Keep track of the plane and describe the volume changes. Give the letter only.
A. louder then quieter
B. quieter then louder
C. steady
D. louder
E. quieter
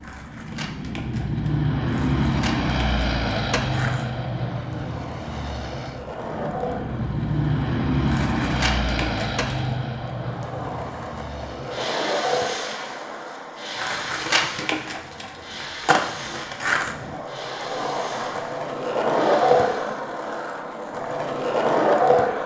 E.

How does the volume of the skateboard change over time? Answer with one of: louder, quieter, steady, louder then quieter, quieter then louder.
louder.